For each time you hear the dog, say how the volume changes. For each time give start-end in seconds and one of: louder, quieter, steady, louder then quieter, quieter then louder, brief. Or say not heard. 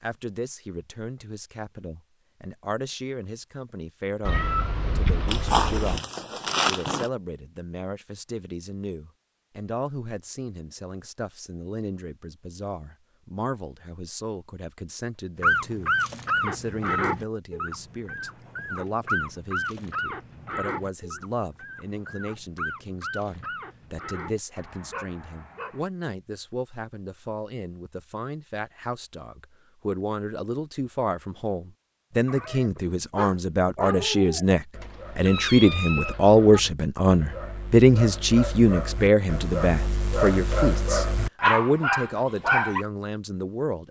15.4-25.9 quieter
32.2-42.9 quieter then louder.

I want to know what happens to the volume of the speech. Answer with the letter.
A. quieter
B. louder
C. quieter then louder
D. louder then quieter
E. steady
B.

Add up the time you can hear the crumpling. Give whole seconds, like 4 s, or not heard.
2 s.